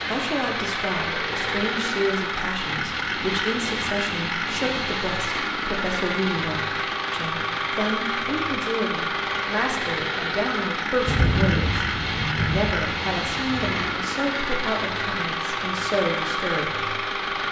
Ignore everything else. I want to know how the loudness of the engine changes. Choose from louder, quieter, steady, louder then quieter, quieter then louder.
steady.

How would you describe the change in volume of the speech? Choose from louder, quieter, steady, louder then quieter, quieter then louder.
steady.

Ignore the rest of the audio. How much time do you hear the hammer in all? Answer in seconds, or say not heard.
not heard.